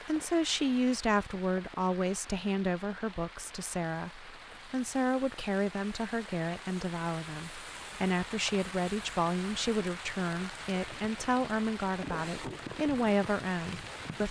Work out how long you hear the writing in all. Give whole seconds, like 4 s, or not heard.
not heard.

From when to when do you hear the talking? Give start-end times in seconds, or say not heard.
0.1-14.2.